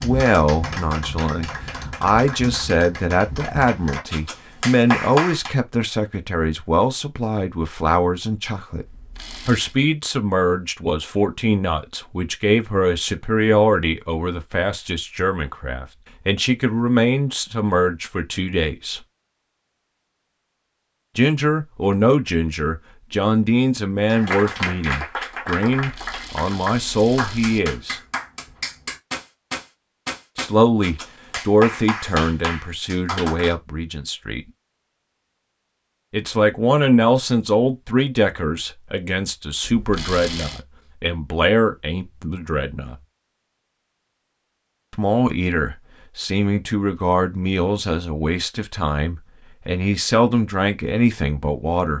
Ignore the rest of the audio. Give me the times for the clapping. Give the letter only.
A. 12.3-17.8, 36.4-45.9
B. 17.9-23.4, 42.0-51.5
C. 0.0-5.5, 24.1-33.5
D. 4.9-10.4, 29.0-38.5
C.